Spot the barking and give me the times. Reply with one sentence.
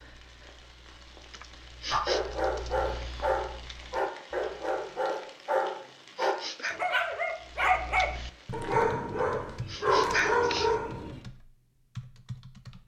The barking can be heard from 1.9 to 11.2 s.